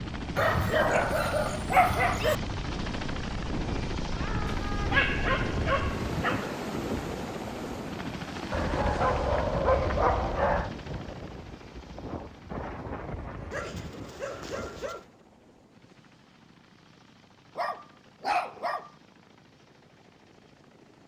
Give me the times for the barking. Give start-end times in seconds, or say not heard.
0.3-2.4, 4.5-6.5, 8.5-10.7, 13.5-15.1, 17.6-18.9.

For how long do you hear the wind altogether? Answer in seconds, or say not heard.
15 s.